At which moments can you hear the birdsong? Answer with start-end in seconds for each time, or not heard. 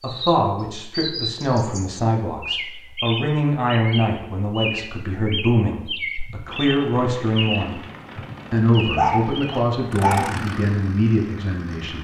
0.0-9.7.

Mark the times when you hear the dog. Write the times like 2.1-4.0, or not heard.
8.6-10.3.